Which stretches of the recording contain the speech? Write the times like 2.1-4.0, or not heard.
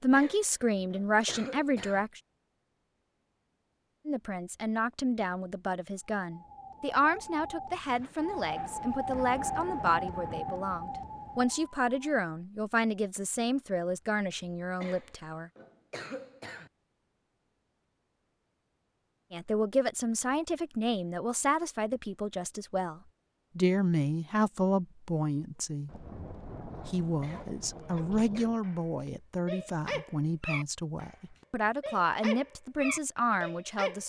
0.0-2.2, 4.0-15.5, 19.3-26.1, 26.9-34.0.